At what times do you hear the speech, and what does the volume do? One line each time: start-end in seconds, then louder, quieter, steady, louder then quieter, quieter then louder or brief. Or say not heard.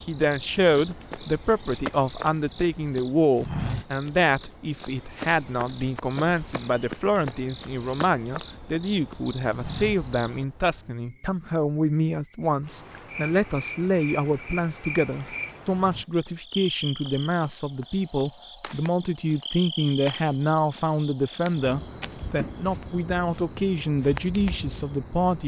0.0-25.4 steady.